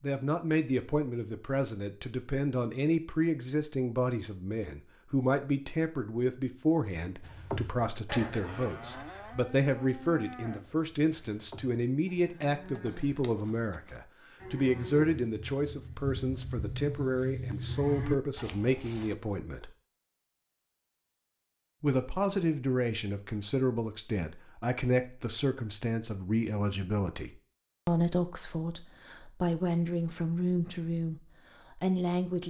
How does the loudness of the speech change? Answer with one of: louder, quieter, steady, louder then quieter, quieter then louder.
steady.